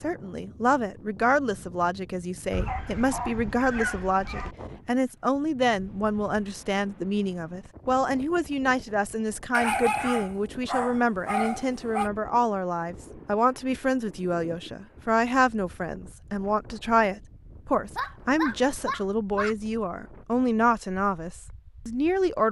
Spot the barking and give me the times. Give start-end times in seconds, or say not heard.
2.5-4.5, 9.5-12.1, 17.9-19.6.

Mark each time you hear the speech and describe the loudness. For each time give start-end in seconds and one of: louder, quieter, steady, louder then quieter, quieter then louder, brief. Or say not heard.
0.0-22.4 steady.